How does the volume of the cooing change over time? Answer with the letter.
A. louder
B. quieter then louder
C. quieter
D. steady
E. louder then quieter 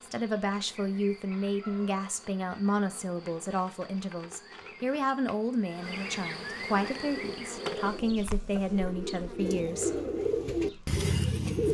A.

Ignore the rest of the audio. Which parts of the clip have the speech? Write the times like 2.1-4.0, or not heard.
0.0-9.9.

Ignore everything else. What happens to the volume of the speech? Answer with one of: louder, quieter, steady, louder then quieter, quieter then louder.
steady.